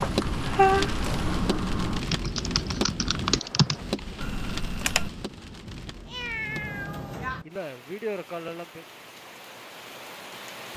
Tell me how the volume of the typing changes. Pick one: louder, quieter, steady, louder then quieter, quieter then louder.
louder then quieter.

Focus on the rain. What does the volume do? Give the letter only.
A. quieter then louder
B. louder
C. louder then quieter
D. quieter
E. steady
D.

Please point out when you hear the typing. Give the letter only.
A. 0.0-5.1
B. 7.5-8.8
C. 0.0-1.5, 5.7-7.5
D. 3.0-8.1
A.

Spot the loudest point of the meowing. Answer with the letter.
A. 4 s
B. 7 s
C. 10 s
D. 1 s
D.